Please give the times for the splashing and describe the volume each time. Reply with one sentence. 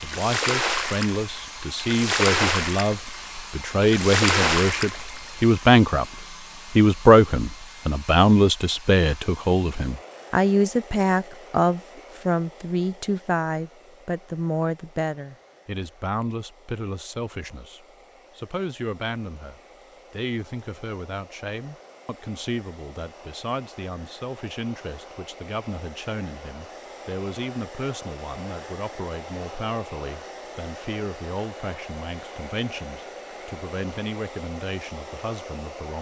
You can hear the splashing from 0.0 to 5.4 s, getting quieter then louder.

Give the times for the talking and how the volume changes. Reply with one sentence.
The talking can be heard from 0.0 to 35.9 s, getting quieter.